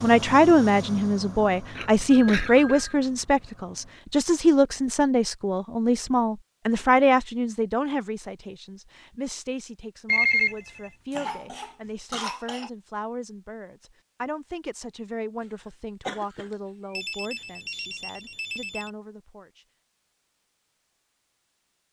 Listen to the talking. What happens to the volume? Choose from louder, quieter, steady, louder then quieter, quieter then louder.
quieter.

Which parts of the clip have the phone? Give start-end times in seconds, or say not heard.
2.1-3.0, 10.1-10.9, 16.9-18.9.